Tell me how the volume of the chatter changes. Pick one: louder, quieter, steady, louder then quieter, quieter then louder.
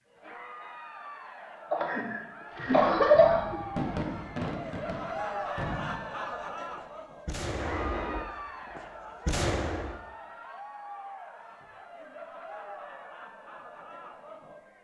louder then quieter.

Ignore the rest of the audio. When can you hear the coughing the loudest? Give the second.
3 s.